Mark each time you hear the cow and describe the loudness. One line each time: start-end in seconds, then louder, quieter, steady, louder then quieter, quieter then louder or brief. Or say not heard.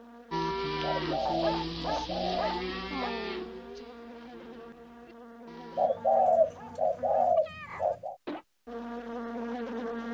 0.3-5.9 quieter.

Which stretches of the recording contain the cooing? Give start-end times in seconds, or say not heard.
0.8-2.5, 5.8-8.2.